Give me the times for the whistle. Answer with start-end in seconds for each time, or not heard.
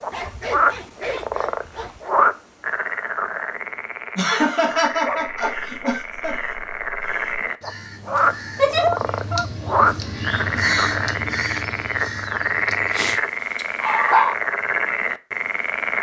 not heard.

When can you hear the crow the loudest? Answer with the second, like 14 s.
11 s.